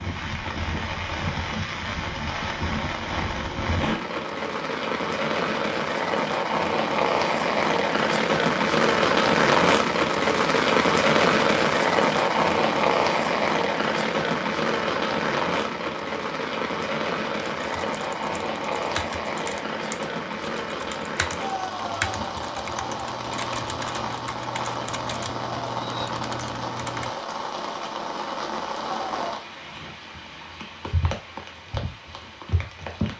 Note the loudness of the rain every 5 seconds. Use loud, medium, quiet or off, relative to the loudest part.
medium, loud, loud, medium, medium, medium, quiet.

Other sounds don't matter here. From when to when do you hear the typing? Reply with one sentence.
You can hear the typing from 17.6 to 27.1 s.